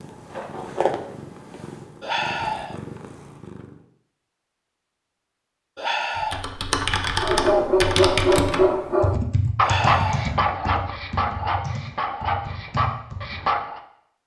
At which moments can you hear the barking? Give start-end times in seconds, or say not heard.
7.2-13.8.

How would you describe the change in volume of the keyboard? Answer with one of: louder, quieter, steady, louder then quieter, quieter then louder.
quieter.